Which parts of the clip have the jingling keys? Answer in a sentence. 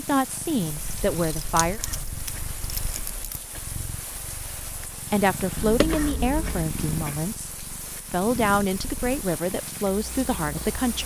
The jingling keys can be heard from 0.8 to 3.5 s and from 5.5 to 6.7 s.